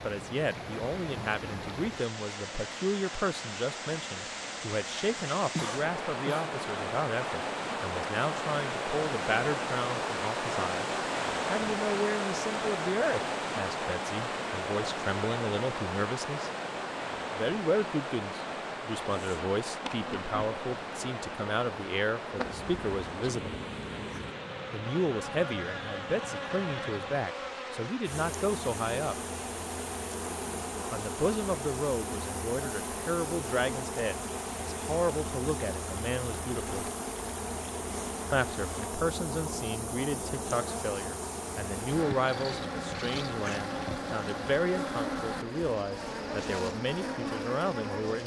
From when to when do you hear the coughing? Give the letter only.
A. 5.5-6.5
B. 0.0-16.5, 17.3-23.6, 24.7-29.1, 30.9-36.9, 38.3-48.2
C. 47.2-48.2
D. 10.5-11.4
A.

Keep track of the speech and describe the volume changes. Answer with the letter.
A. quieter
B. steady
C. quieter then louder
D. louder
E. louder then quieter
B.